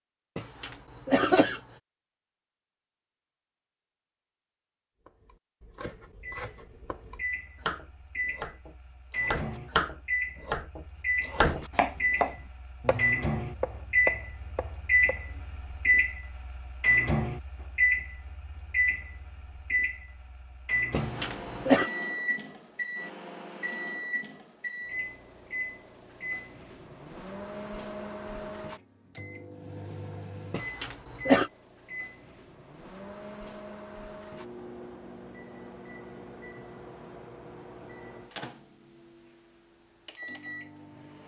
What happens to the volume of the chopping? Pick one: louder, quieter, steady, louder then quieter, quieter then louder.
louder then quieter.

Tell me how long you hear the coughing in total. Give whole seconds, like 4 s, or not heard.
3 s.